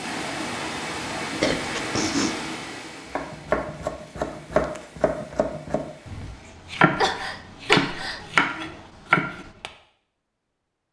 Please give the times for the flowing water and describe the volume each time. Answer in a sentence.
The flowing water can be heard from 0.0 to 6.5 s, getting quieter.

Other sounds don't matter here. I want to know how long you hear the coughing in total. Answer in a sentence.
The coughing can be heard for 2 seconds in total.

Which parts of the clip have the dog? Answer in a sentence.
You can't hear the dog here.